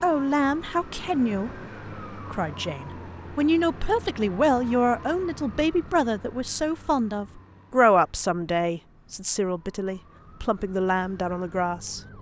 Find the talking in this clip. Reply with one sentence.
You can hear the talking from 0.0 to 12.0 s.